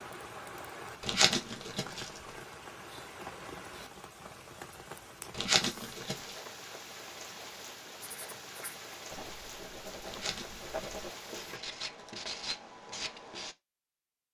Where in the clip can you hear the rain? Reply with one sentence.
The rain can be heard from 0.0 to 11.6 s.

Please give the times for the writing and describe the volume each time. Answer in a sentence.
The writing can be heard from 8.0 to 13.6 s, getting louder.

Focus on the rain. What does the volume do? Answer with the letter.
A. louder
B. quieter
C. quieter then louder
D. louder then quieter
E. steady
E.